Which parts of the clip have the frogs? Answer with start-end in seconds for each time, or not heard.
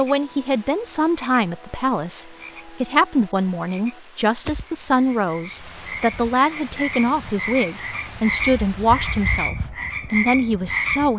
0.0-11.1.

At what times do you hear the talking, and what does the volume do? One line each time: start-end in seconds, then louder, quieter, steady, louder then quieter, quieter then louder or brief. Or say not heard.
0.0-11.1 steady.